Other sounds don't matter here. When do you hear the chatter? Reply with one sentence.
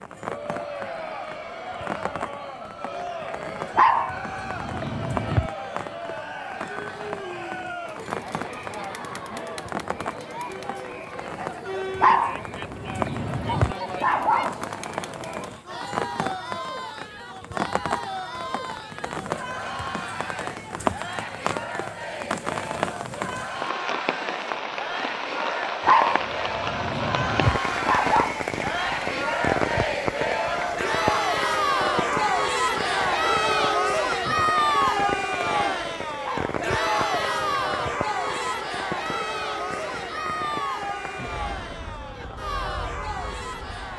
You can hear the chatter from 0.1 to 43.9 s.